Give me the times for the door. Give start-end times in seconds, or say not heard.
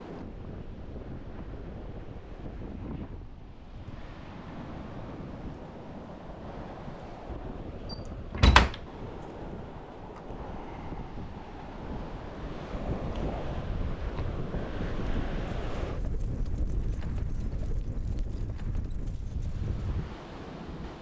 7.9-8.8.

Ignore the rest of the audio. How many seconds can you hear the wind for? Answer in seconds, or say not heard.
21 s.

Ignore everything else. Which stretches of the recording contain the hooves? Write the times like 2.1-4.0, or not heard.
12.3-19.9.